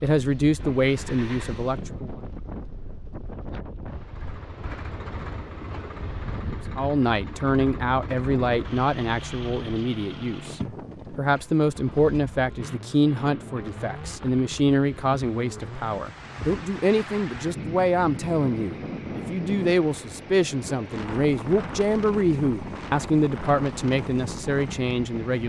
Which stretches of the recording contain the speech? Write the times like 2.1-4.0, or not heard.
0.0-2.1, 6.8-25.4.